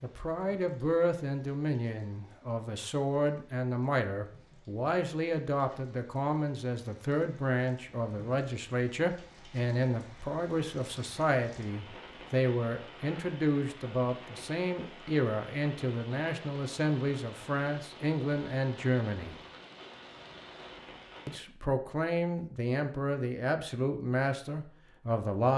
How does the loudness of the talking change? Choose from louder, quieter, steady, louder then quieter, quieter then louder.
steady.